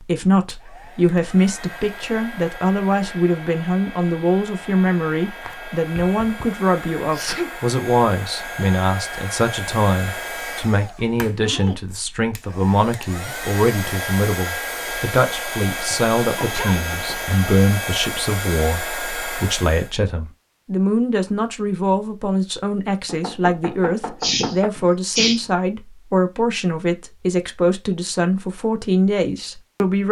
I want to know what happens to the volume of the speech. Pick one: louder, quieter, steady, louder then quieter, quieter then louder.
steady.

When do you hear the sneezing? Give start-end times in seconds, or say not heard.
7.1-7.5, 15.9-17.2, 24.2-25.4.